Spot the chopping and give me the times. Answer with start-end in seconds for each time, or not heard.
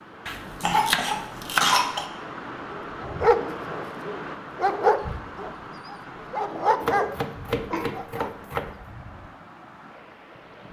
0.2-1.8, 6.8-8.8.